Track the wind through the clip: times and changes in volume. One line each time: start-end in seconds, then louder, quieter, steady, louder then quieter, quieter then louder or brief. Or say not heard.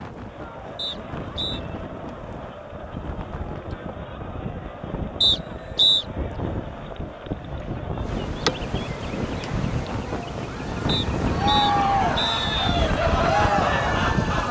0.0-14.4 louder.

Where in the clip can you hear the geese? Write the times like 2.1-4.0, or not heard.
not heard.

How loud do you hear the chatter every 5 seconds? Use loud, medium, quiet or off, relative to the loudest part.
quiet, quiet, loud.